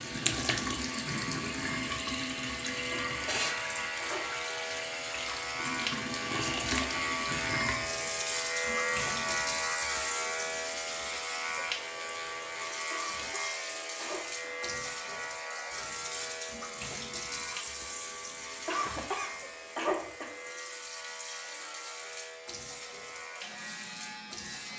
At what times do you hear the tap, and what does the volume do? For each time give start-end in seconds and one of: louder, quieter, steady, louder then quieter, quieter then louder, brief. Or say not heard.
0.0-24.7 quieter.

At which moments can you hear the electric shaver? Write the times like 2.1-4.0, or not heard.
0.0-24.7.